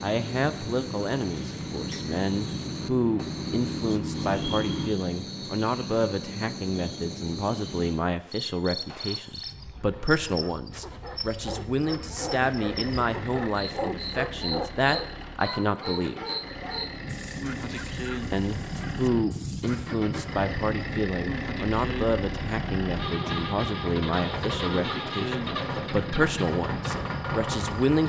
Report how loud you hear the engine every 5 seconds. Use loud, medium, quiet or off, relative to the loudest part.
loud, off, medium, medium, loud, loud.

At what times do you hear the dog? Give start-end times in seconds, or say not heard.
10.3-19.8.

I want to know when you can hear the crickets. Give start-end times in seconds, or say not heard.
0.0-28.0.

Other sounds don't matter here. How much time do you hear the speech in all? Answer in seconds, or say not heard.
26 s.